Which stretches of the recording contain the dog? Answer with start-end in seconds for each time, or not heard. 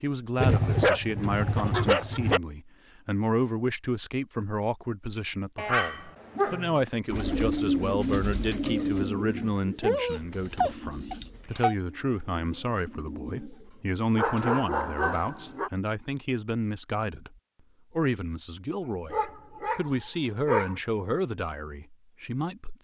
0.3-2.4, 5.5-6.8, 9.8-11.8, 14.2-15.7, 19.1-20.8.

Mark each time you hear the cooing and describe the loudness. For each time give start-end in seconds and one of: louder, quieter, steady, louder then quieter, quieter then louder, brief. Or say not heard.
7.1-13.9 quieter then louder.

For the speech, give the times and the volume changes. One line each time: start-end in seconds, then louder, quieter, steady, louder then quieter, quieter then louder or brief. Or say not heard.
0.0-22.7 steady.